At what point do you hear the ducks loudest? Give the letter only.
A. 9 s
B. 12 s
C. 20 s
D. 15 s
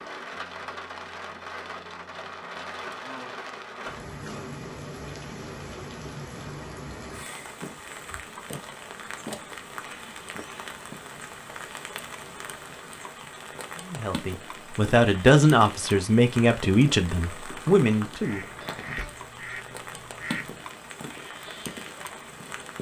C.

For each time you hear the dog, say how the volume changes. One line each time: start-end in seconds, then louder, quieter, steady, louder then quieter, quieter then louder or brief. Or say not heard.
not heard.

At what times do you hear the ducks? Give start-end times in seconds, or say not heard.
18.2-20.7.